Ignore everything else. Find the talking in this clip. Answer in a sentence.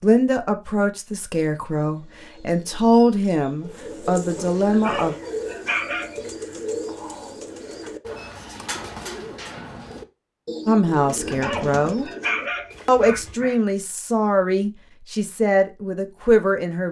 You can hear the talking from 0.0 to 5.2 s, from 10.7 to 12.1 s and from 12.8 to 16.8 s.